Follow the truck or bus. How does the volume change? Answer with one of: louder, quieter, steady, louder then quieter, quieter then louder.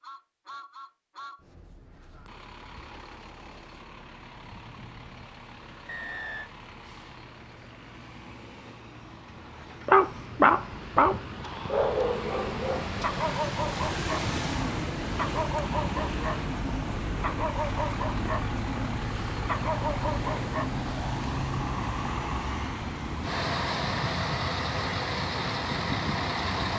louder.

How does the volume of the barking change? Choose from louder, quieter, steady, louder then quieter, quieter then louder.
quieter.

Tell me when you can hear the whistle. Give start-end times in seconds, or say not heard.
5.8-6.5.